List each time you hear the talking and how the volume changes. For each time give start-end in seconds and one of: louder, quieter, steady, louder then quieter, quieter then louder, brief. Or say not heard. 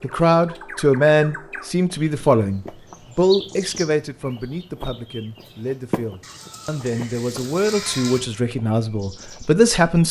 0.0-10.0 quieter then louder.